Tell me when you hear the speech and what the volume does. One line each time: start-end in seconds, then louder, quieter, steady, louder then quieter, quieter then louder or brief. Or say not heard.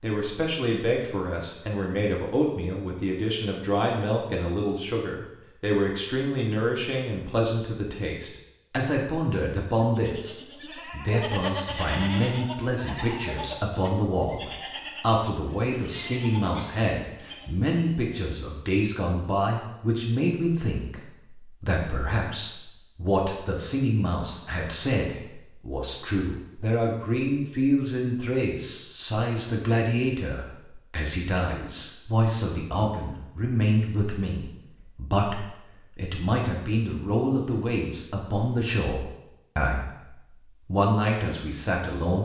0.0-42.2 steady.